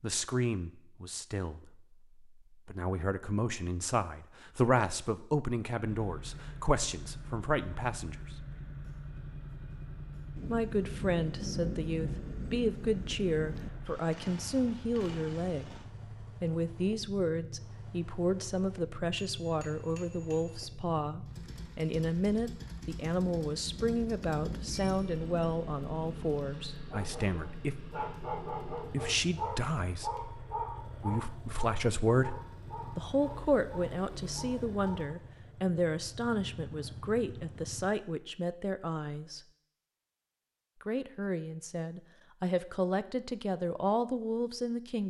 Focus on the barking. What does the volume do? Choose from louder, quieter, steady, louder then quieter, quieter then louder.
quieter.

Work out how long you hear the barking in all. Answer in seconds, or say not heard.
8 s.